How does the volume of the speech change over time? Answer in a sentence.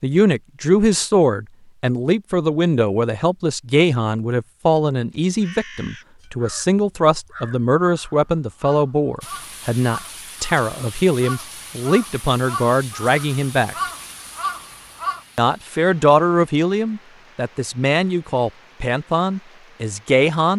The volume of the speech stays about the same.